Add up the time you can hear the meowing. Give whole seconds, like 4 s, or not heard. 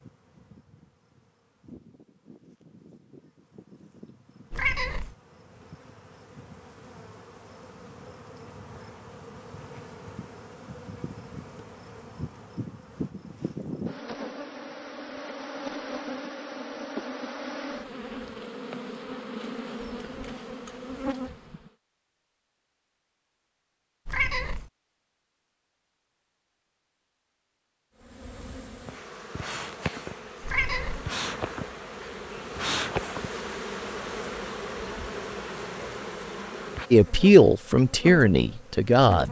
2 s.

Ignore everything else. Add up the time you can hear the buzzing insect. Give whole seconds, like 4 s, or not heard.
33 s.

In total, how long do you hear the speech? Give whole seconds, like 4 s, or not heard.
2 s.